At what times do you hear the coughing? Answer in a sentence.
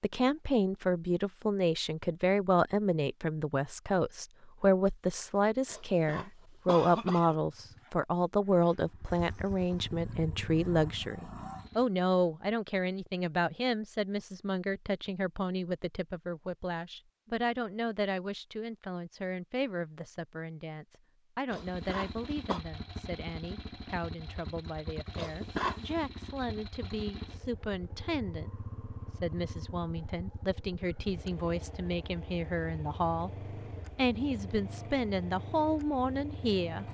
The coughing can be heard from 5.7 to 7.3 s, from 21.5 to 22.6 s and from 25.1 to 26.0 s.